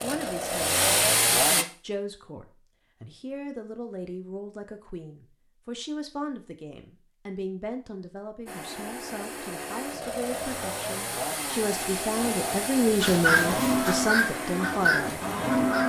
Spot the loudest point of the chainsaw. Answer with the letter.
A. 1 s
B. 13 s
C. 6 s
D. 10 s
A.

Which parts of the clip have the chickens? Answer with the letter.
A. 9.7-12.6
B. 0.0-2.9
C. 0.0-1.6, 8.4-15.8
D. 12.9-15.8
D.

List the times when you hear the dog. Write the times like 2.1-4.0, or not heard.
not heard.